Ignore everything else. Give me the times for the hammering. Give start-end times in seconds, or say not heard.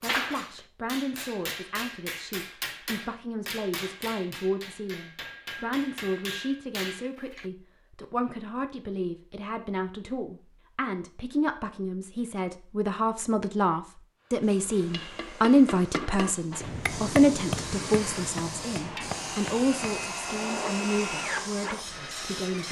0.0-7.5, 14.9-20.2.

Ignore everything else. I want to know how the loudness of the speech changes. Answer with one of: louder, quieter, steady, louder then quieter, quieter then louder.
louder then quieter.